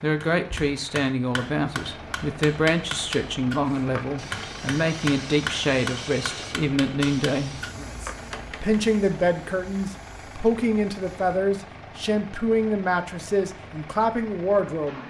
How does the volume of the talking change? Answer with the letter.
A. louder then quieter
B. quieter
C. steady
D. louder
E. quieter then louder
C.